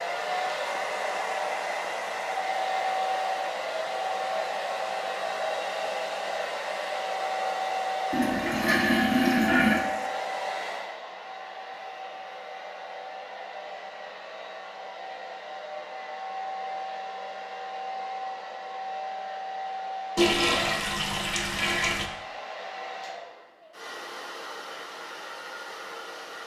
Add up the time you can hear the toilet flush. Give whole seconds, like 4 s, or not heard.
4 s.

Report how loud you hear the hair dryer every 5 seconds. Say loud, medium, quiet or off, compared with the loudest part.
loud, loud, medium, medium, medium, medium.